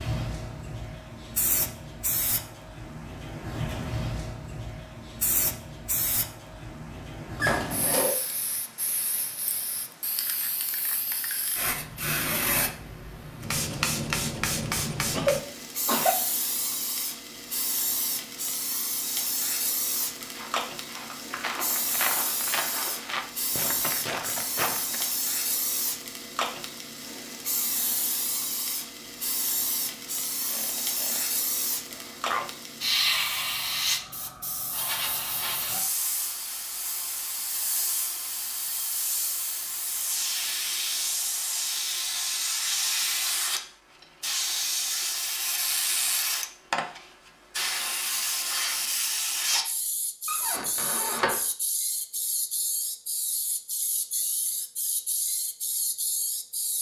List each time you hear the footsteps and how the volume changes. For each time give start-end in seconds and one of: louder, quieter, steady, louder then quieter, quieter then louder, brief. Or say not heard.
20.1-25.1 louder.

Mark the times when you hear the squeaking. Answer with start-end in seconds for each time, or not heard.
7.3-8.2, 30.4-31.2, 50.2-51.4.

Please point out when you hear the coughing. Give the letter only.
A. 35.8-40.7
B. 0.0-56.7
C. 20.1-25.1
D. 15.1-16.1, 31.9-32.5
D.